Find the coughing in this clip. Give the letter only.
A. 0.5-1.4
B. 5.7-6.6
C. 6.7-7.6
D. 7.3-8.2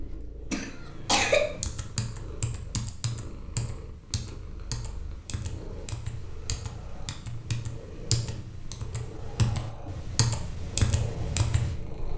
A.